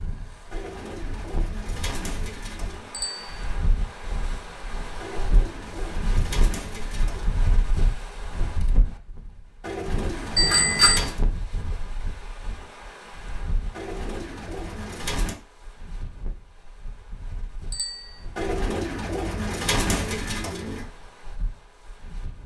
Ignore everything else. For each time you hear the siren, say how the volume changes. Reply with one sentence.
The siren can't be heard in this clip.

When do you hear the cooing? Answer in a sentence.
You can hear the cooing from 0.5 to 3.0 s, from 5.0 to 7.5 s, from 9.6 to 11.2 s, from 13.7 to 15.3 s and from 18.4 to 20.9 s.